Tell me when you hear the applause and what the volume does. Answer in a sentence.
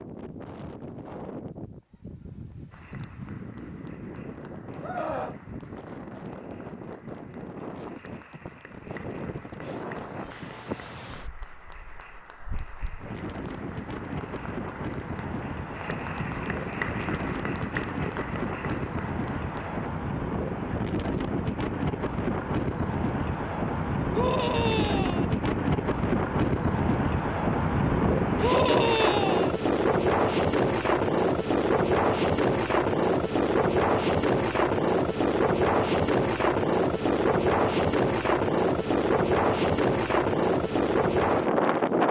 The applause can be heard from 2.7 to 19.9 s, getting louder.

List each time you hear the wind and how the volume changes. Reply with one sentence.
You can hear the wind from 0.0 to 42.0 s, getting louder.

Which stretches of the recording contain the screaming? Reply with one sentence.
The screaming can be heard from 4.8 to 5.3 s, from 24.1 to 25.2 s and from 28.4 to 29.6 s.